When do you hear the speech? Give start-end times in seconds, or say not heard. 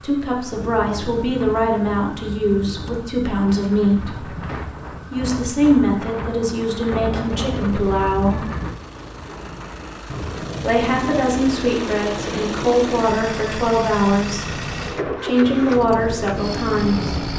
0.0-4.3, 5.1-8.4, 10.6-17.2.